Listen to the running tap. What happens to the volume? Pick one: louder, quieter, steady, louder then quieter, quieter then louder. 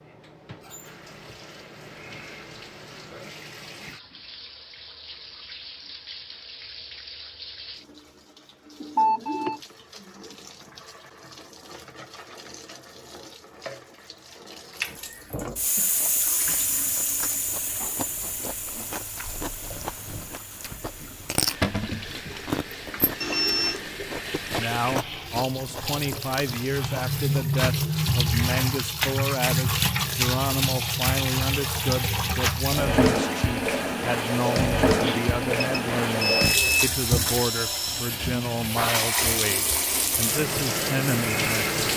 louder.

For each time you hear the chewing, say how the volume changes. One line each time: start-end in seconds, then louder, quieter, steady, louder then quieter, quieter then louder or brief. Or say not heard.
15.8-28.0 louder then quieter.